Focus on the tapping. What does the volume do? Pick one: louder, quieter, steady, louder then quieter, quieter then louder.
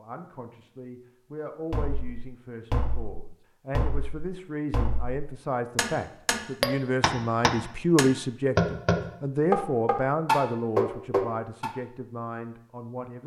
louder.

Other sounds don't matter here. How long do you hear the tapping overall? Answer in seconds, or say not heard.
10 s.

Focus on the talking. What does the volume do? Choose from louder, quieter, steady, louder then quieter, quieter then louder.
louder then quieter.